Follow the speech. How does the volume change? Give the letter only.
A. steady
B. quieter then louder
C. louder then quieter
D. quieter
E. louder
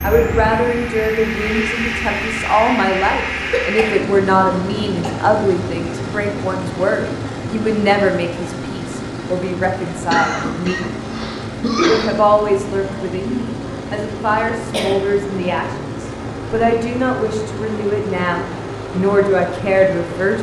A.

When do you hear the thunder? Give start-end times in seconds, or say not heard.
not heard.